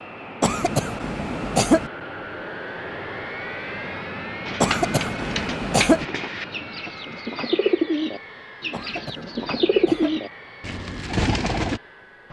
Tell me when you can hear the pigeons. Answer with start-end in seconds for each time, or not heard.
4.5-11.8.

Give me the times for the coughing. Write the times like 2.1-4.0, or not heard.
0.4-1.9, 4.6-6.0, 8.7-10.2.